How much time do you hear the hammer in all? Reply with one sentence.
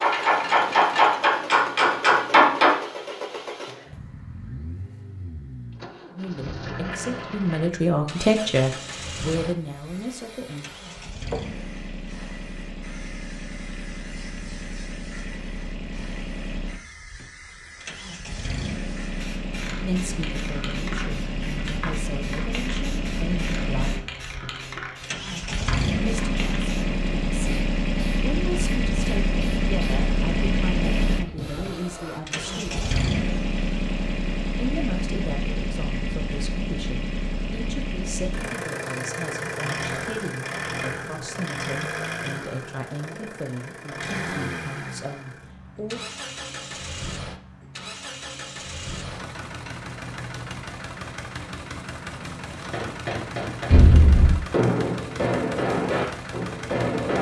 The hammer can be heard for 7 seconds in total.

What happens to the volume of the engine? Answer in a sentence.
The loudness of the engine goes up, then down.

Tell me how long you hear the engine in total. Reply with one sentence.
The engine can be heard for 57 seconds in total.